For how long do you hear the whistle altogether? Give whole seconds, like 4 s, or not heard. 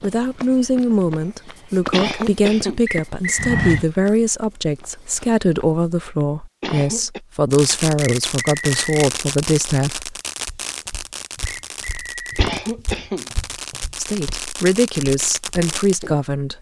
3 s.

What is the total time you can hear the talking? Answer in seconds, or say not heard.
13 s.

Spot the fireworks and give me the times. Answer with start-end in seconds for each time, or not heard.
7.5-15.9.